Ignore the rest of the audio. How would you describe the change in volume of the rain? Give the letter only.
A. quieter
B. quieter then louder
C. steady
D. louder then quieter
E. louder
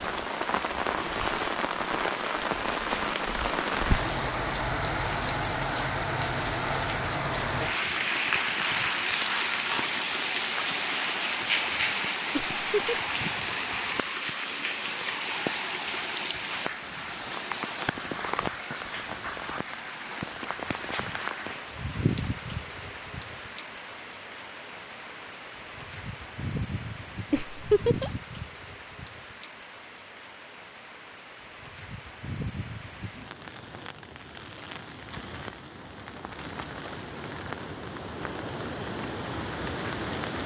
A.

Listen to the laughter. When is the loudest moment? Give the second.
28 s.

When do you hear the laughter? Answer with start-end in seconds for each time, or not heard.
12.3-12.9, 27.3-28.1.